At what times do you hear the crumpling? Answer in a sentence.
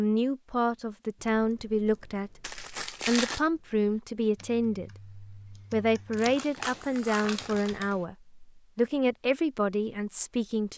You can hear the crumpling from 2.4 to 3.4 s and from 6.2 to 7.8 s.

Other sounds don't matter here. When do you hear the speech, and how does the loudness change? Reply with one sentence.
The speech can be heard from 0.0 to 10.7 s, at a steady volume.